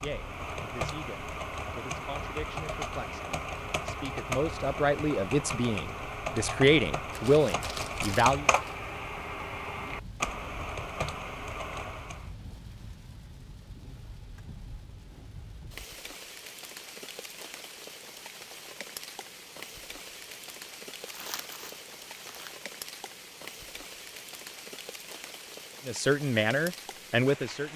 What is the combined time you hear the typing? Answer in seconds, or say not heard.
12 s.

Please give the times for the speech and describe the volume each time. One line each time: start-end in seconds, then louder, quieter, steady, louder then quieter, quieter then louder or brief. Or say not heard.
0.0-8.4 louder
25.9-27.7 brief.